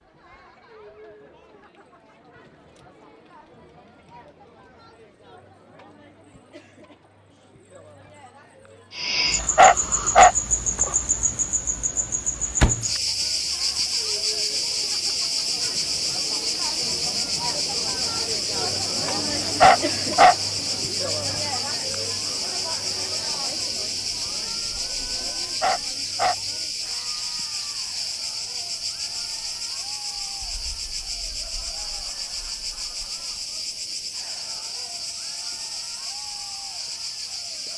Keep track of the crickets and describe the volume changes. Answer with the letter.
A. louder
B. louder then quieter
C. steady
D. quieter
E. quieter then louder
D.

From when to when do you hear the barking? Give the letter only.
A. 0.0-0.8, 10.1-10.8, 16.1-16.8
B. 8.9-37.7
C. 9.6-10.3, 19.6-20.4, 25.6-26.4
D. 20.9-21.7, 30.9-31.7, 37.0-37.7
C.